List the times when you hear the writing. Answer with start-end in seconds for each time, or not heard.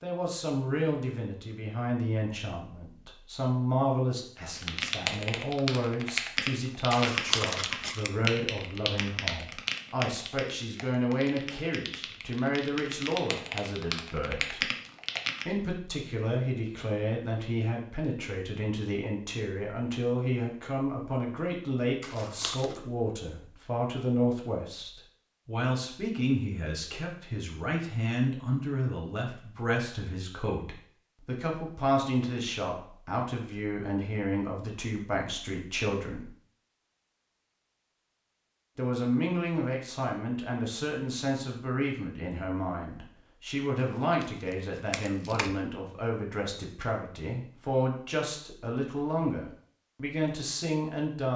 not heard.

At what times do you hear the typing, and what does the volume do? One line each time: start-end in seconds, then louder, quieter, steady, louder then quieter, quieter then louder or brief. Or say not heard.
4.5-15.4 quieter then louder.